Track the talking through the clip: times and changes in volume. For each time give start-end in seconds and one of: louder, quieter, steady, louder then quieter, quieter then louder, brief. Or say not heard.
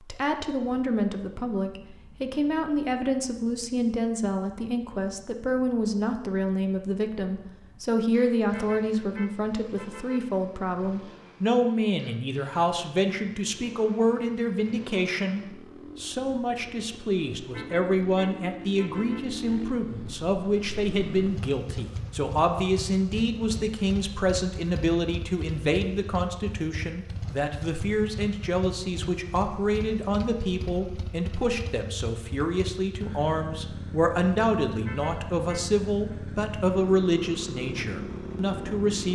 0.0-39.1 steady.